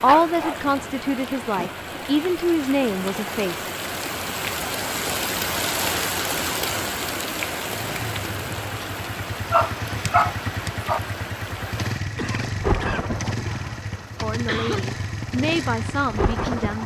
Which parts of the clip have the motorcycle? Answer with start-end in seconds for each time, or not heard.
7.7-16.8.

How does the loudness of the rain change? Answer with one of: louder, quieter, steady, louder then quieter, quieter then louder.
louder then quieter.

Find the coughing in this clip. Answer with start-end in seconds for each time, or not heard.
12.2-14.8.